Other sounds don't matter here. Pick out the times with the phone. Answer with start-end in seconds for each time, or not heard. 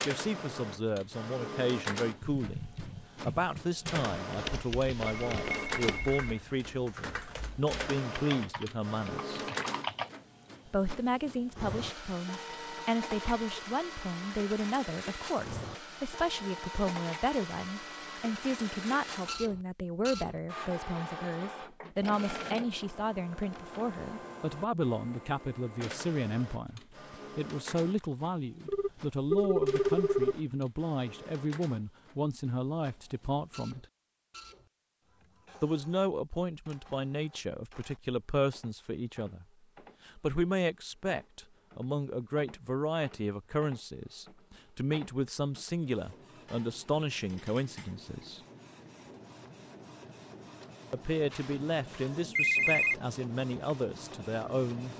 4.4-6.4, 28.6-30.4, 51.3-53.0.